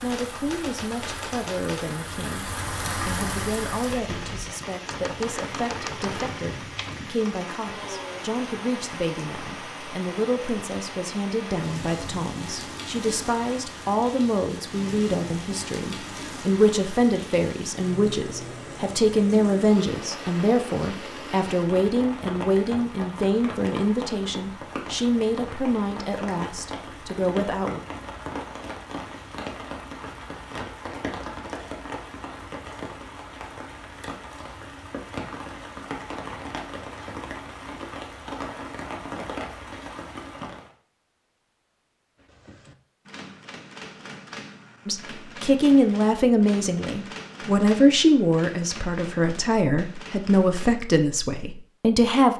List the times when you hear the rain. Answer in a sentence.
The rain can be heard from 0.0 to 40.8 s.